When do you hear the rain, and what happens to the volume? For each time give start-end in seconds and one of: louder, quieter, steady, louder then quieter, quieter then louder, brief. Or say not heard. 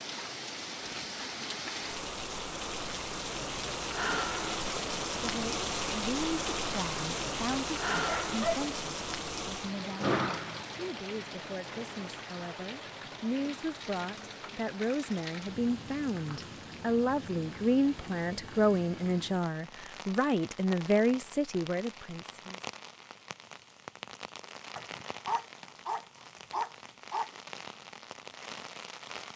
0.0-29.3 quieter.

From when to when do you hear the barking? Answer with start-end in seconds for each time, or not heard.
7.9-8.7, 24.8-27.3.